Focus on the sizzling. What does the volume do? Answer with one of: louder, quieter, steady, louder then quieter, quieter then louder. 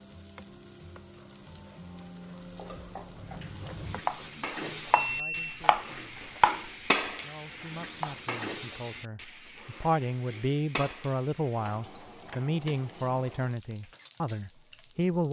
louder then quieter.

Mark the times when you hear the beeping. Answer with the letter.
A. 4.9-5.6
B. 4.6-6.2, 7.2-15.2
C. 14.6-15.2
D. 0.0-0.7
A.